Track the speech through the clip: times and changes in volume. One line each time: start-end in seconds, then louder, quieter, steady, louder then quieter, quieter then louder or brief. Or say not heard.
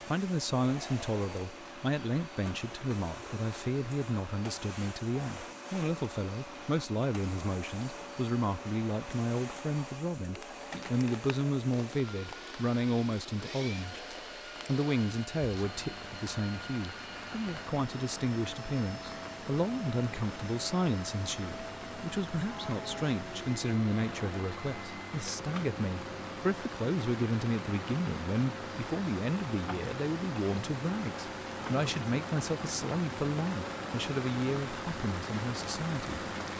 0.1-36.2 steady.